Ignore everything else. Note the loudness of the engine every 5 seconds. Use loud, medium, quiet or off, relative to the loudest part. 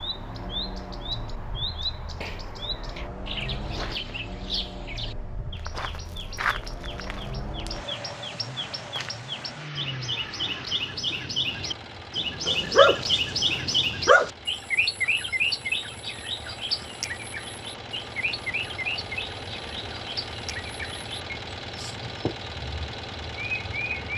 loud, loud, medium, loud, loud.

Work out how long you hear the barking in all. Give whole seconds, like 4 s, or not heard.
2 s.